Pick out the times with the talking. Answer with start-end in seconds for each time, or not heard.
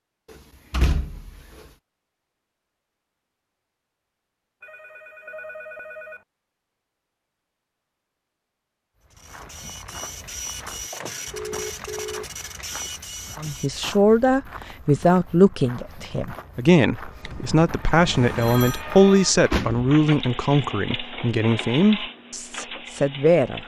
13.3-23.6.